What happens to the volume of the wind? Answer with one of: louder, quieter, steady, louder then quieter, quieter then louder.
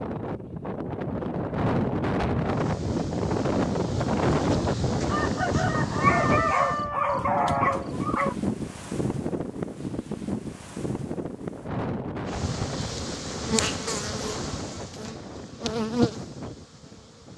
quieter.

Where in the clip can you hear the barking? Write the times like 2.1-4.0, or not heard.
5.9-8.3.